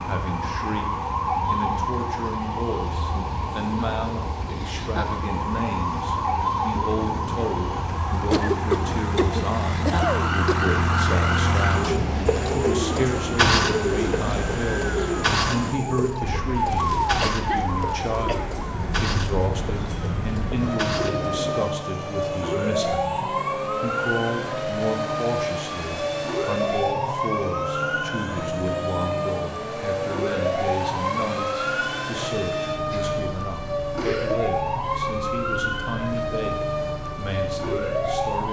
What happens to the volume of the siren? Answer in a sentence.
The loudness of the siren stays about the same.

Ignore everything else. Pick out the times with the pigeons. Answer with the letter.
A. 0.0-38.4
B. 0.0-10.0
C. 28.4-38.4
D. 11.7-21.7
D.